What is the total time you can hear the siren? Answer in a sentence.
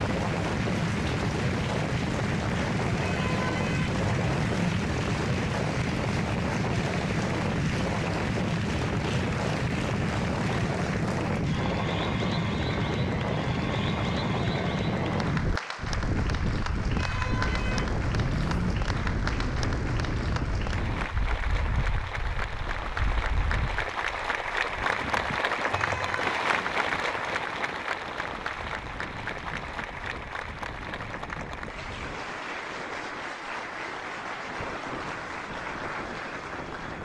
You can't hear the siren here.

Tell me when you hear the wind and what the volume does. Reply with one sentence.
The wind can be heard from 0.0 to 37.0 s, getting quieter.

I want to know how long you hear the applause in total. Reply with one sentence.
You can hear the applause for 37 seconds altogether.